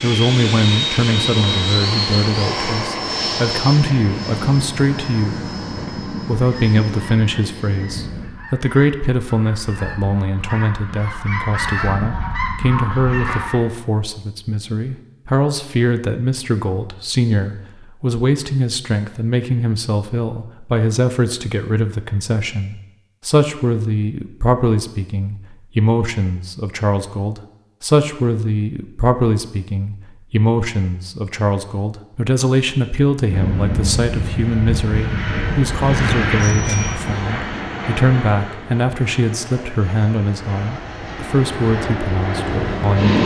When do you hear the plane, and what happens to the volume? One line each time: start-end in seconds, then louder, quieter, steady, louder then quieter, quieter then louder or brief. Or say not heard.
0.0-8.3 quieter
33.3-43.2 quieter then louder.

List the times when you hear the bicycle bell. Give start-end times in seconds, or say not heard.
36.4-37.0.